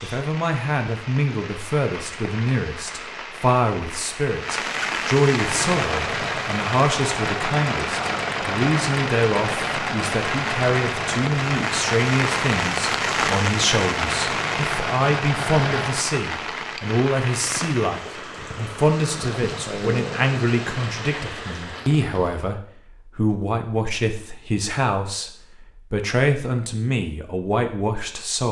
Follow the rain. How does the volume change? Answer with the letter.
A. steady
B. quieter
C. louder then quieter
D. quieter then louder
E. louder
C.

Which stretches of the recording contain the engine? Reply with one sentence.
You can hear the engine from 5.3 to 16.1 s.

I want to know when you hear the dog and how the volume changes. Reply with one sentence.
You can't hear the dog here.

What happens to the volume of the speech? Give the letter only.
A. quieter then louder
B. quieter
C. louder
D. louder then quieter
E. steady
E.